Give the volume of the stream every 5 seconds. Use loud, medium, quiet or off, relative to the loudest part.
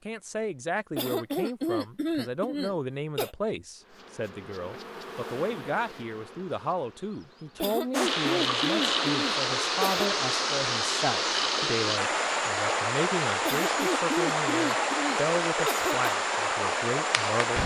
off, loud, loud, loud.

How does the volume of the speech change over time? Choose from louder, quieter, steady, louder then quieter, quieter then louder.
steady.